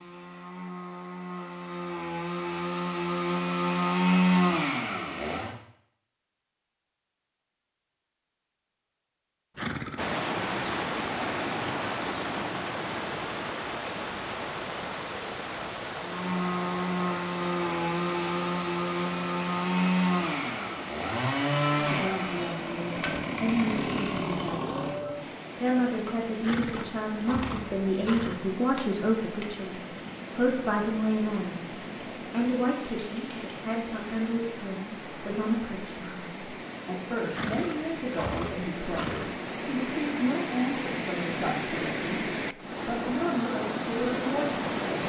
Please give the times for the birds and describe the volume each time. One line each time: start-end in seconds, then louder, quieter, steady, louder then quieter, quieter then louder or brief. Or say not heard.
not heard.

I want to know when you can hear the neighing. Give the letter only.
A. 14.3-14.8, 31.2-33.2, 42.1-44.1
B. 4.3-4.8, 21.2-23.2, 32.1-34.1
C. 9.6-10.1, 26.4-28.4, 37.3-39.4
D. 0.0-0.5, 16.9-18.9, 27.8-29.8
C.